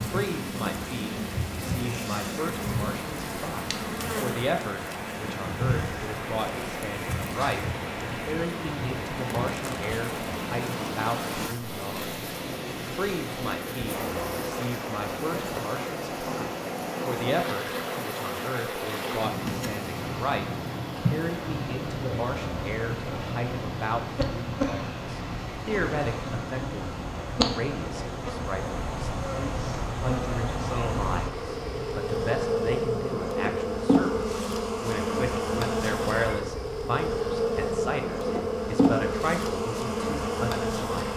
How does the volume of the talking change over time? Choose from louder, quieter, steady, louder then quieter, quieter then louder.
steady.